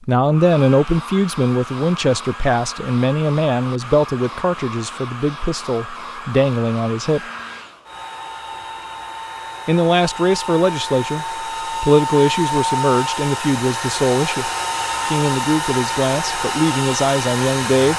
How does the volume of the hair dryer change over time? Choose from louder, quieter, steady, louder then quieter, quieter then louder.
louder.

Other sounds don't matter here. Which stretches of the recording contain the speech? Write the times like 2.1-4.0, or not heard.
0.0-7.2, 9.7-17.9.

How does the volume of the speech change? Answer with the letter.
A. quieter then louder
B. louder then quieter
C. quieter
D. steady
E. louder
D.